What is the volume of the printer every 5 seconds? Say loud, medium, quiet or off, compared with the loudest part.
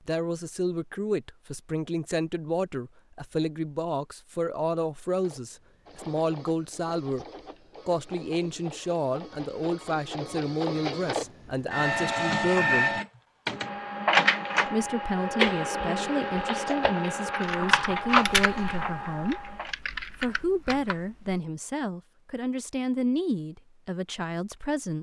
off, quiet, loud, loud, off.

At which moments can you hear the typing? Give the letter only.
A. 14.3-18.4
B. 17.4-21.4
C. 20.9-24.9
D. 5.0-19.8
B.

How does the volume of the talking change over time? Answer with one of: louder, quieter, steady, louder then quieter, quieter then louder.
steady.